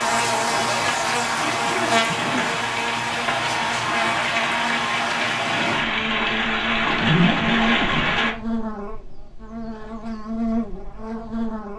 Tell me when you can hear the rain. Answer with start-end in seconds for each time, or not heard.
0.0-8.3.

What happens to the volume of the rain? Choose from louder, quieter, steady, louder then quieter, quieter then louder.
louder.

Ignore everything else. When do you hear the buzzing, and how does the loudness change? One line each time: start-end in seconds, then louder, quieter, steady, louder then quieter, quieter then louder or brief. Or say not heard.
0.0-11.7 quieter.